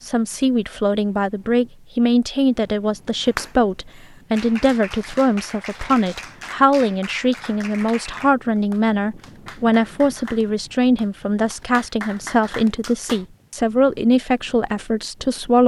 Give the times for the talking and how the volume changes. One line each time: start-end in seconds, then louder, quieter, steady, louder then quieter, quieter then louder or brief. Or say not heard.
0.0-15.6 steady.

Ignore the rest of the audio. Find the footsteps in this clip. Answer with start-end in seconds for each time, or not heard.
not heard.